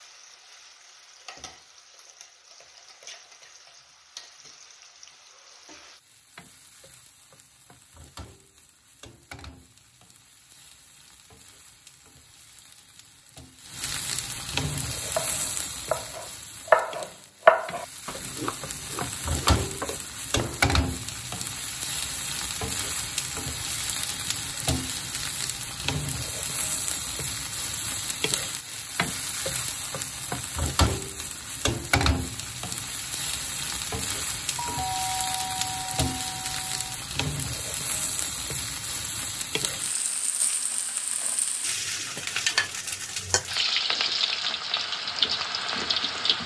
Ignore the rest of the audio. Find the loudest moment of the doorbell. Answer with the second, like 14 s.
35 s.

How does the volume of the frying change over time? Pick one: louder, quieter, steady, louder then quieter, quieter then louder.
louder.